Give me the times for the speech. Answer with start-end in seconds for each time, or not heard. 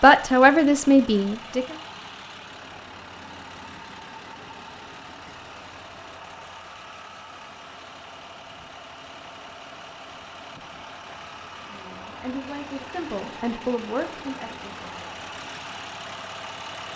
0.0-1.8, 11.7-15.1.